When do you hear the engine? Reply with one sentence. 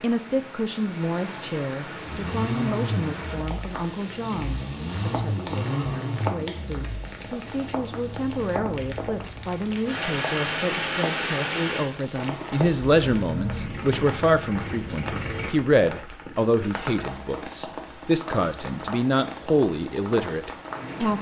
You can hear the engine from 1.9 to 15.5 s.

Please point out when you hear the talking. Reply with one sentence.
The talking can be heard from 0.0 to 21.1 s.